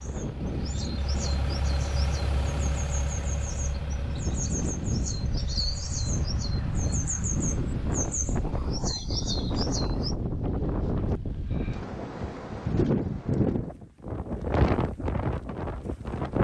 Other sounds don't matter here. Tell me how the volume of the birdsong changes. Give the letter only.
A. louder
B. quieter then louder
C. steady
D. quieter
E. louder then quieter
A.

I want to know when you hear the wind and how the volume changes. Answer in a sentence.
You can hear the wind from 0.0 to 16.3 s, getting louder.